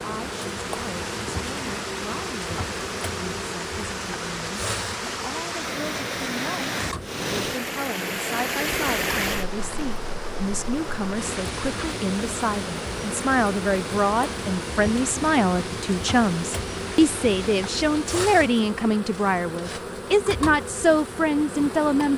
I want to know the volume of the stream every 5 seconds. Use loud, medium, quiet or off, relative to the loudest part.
medium, loud, medium, medium, off.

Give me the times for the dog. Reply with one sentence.
You can't hear the dog here.